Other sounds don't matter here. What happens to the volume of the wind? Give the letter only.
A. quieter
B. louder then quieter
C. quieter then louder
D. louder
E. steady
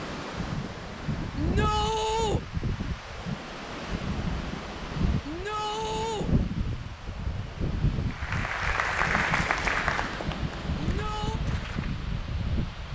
E.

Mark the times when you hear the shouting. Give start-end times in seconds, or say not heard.
1.4-2.4, 5.2-6.3, 10.8-11.4.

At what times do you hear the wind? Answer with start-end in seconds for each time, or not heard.
0.0-12.8.